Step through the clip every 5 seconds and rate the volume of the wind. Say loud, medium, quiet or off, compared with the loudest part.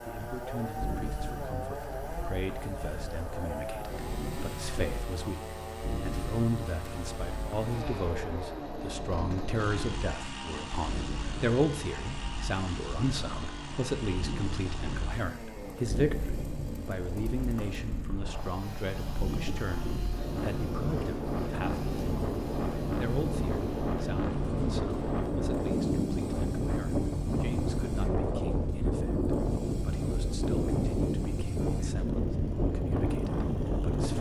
quiet, quiet, medium, medium, loud, loud, loud.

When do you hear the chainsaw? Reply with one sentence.
The chainsaw can be heard from 0.0 to 34.1 s.